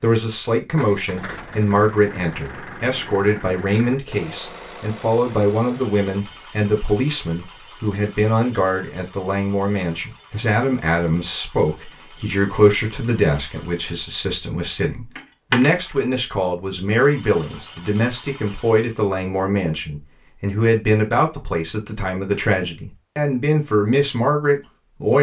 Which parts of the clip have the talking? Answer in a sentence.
You can hear the talking from 0.0 to 25.1 s.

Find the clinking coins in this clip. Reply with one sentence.
The clinking coins can be heard from 15.2 to 16.1 s.